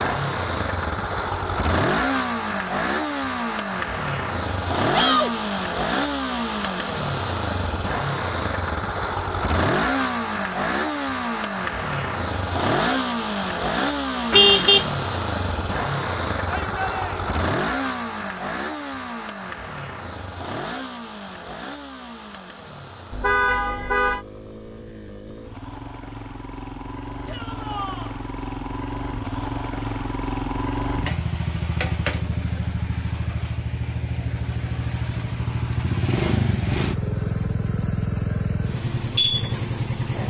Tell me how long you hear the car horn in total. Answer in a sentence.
The car horn can be heard for 2 seconds in total.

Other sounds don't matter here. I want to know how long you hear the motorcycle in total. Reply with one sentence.
The motorcycle can be heard for 40 seconds in total.